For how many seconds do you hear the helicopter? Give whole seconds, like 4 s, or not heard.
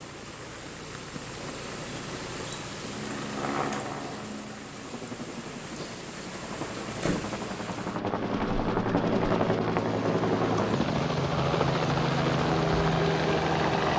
11 s.